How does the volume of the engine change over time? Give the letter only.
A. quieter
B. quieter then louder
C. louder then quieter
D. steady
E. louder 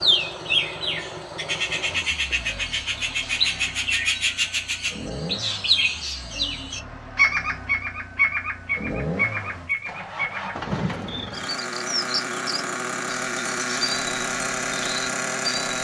E.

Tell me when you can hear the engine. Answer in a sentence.
The engine can be heard from 0.0 to 15.7 s.